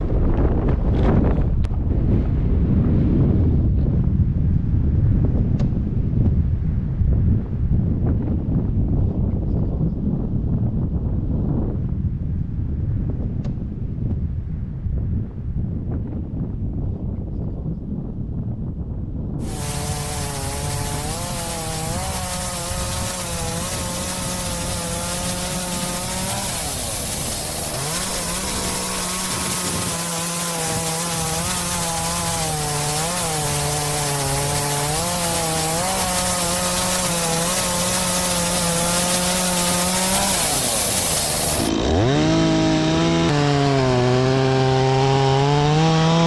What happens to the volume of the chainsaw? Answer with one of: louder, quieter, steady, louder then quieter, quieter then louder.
louder.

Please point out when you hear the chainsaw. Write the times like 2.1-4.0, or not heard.
19.4-46.2.